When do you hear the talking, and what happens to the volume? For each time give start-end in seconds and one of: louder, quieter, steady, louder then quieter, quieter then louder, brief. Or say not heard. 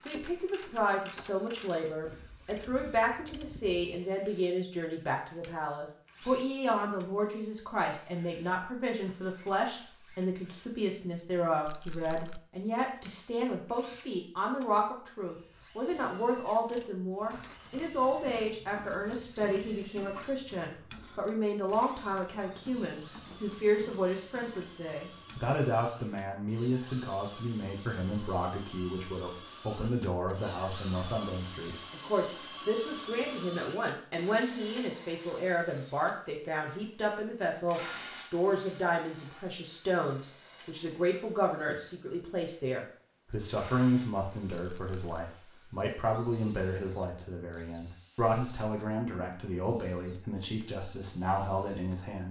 0.1-52.2 steady.